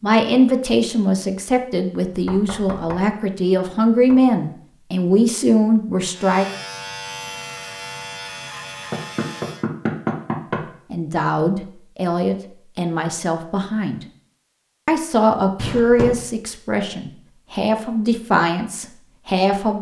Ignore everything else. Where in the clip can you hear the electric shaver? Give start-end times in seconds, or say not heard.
6.1-9.7.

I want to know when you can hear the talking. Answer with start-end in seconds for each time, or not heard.
0.0-6.5, 10.9-14.1, 14.8-19.7.